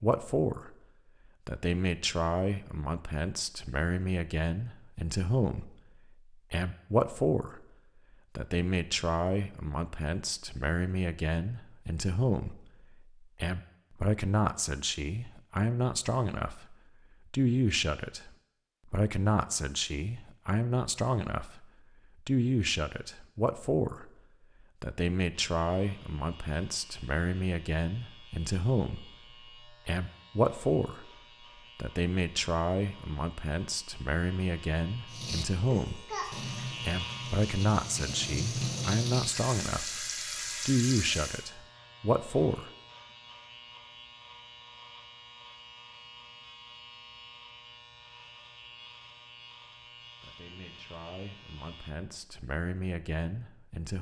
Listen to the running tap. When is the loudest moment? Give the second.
39 s.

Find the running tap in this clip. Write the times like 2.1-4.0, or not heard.
35.0-41.5.